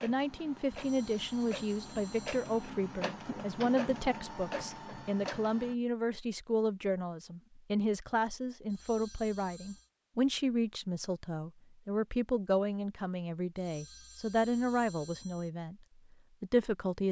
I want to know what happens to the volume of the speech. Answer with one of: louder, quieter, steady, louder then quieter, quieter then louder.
steady.